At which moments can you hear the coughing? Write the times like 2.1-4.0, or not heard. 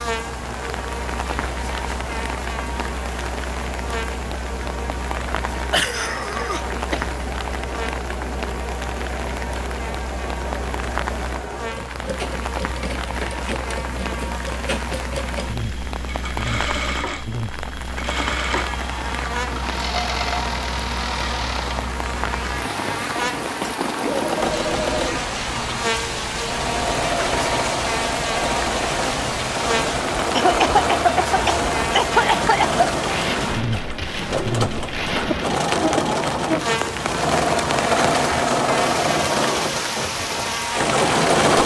5.7-7.0, 30.3-32.9.